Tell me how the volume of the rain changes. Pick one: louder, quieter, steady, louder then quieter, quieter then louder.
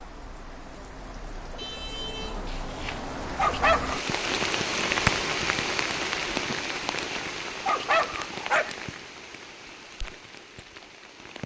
louder then quieter.